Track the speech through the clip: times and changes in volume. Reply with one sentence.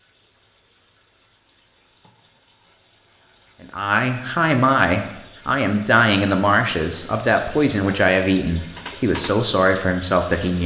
You can hear the speech from 3.6 to 10.6 s, at a steady volume.